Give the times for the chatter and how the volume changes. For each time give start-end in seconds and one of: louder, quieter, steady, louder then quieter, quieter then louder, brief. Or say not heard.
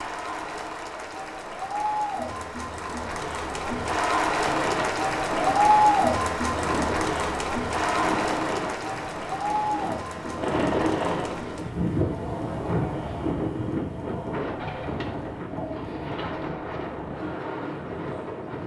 0.0-18.4 louder then quieter.